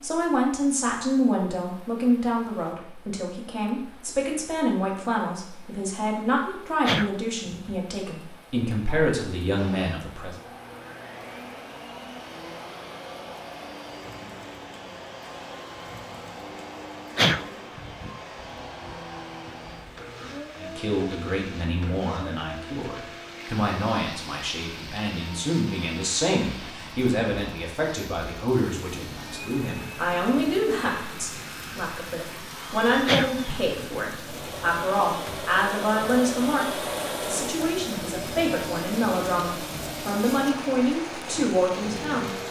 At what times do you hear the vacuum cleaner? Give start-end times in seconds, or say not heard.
9.6-42.4.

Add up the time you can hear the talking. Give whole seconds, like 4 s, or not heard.
32 s.